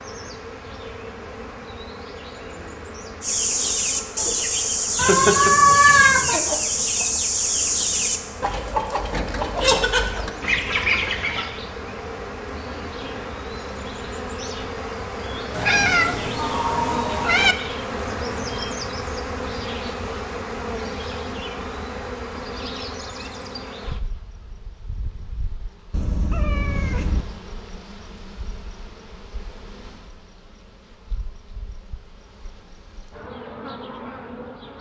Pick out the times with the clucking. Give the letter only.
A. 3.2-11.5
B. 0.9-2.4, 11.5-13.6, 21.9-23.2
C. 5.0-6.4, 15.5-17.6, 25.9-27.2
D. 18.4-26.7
A.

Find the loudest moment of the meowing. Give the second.
6 s.